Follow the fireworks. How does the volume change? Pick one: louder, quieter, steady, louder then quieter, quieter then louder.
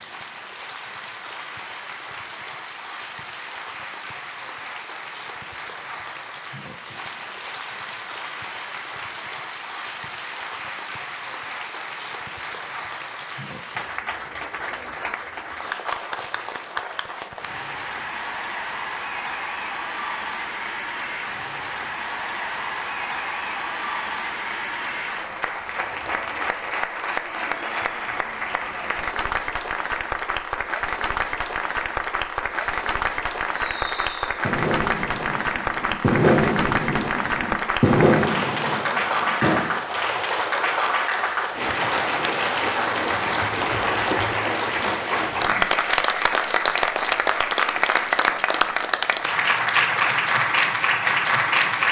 louder then quieter.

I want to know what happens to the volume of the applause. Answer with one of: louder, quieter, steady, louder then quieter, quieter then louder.
louder.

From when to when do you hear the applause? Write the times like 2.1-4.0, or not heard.
0.0-51.8.